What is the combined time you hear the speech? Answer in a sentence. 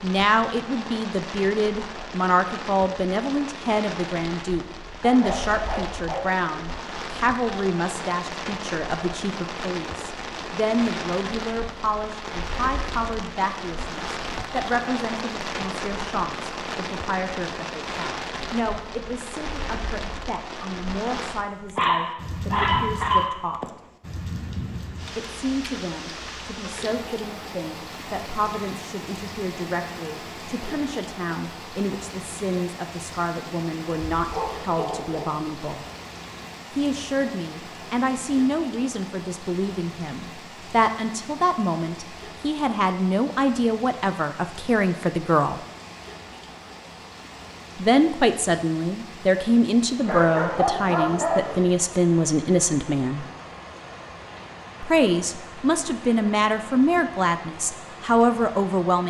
The speech can be heard for 53 seconds in total.